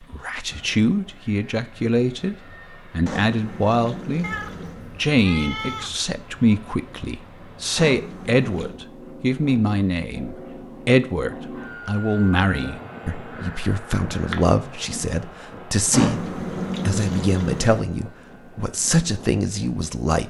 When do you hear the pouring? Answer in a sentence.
You can hear the pouring from 3.0 to 4.8 s, from 7.8 to 8.8 s and from 15.9 to 17.8 s.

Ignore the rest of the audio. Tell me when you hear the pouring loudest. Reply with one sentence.
The loudest moment of the pouring is at 16 seconds.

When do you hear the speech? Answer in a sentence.
You can hear the speech from 0.0 to 4.3 s and from 5.0 to 20.2 s.